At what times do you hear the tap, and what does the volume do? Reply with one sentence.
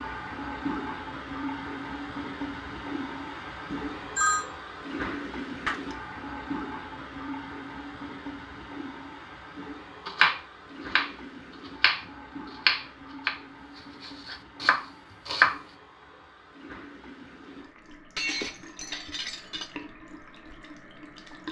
The tap can be heard from 0.0 to 21.4 s, getting quieter.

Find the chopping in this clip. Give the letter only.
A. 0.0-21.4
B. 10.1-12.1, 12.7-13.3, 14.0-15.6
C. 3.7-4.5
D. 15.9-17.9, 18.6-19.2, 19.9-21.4
B.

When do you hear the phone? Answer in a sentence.
The phone can be heard from 3.7 to 4.5 s.